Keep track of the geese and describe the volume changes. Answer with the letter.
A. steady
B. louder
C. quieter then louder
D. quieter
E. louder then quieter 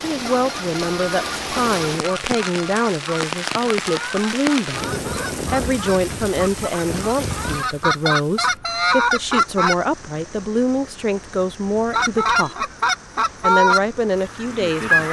B.